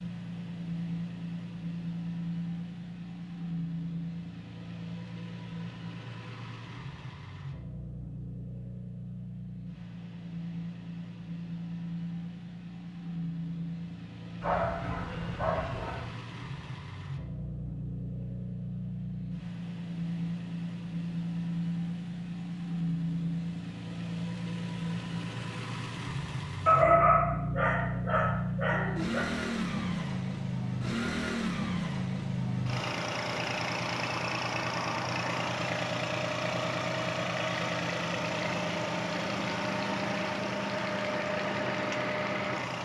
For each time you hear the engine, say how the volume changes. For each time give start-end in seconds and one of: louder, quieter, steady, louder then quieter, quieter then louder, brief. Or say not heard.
0.0-42.8 louder.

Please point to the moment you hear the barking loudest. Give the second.
27 s.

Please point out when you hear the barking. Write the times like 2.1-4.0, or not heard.
14.4-16.1, 26.6-29.2.